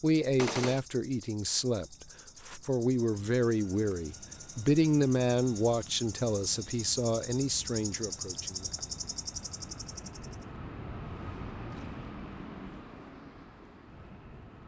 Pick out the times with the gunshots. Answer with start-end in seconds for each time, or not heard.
0.3-0.8.